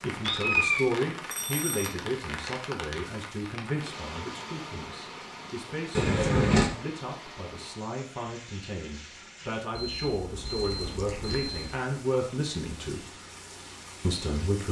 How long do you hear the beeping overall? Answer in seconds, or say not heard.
3 s.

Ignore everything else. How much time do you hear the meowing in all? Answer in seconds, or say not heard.
3 s.